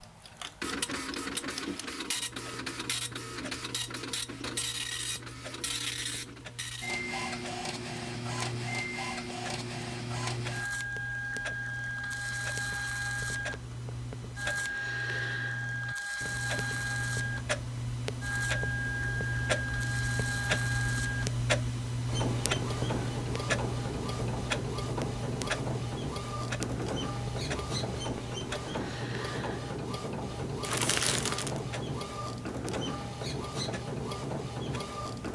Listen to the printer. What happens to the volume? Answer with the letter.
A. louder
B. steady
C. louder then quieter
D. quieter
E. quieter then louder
B.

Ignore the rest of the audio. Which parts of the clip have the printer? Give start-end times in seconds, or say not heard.
0.0-35.3.